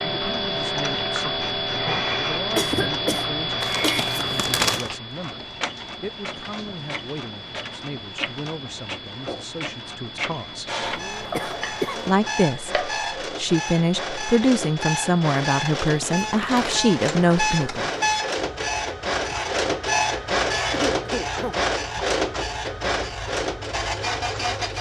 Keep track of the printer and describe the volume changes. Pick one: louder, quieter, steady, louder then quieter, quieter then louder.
louder.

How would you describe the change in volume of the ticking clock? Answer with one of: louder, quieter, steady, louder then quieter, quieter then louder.
quieter.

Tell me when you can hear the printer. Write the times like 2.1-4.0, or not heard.
0.2-24.7.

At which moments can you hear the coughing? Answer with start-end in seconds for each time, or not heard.
2.5-4.0, 10.8-12.2, 20.7-21.6.